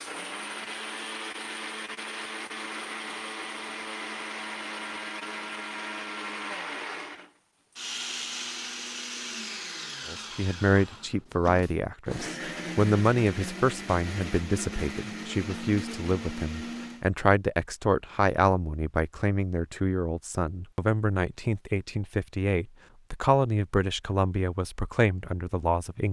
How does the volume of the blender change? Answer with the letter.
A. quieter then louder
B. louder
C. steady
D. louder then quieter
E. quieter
C.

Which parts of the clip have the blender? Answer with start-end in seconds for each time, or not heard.
0.0-17.1.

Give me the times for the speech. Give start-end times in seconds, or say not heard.
10.1-26.0.